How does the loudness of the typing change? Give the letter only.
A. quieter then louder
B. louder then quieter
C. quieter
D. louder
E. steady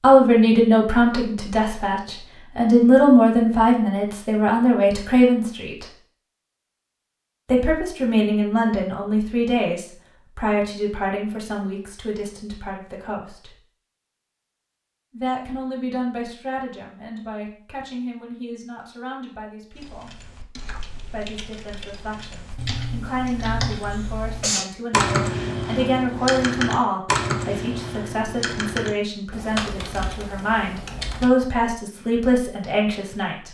B.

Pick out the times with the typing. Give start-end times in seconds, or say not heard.
19.7-31.3.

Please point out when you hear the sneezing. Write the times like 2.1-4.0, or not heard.
23.9-24.7.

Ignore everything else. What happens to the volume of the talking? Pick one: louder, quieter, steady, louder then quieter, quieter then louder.
quieter then louder.